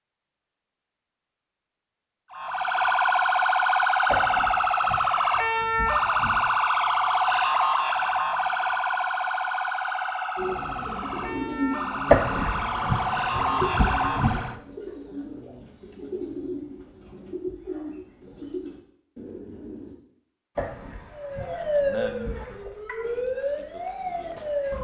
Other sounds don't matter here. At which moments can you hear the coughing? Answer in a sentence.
You can hear the coughing from 4.0 to 6.5 s, from 12.1 to 14.6 s and from 20.6 to 22.6 s.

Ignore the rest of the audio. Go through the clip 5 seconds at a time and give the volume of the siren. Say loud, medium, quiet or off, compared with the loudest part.
loud, loud, medium, off, medium.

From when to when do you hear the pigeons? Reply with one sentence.
You can hear the pigeons from 10.3 to 19.9 s.